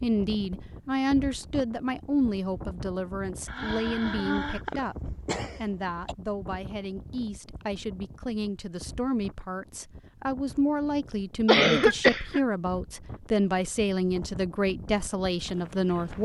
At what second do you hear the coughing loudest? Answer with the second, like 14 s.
12 s.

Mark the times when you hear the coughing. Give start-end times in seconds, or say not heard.
3.5-6.2, 11.4-12.4.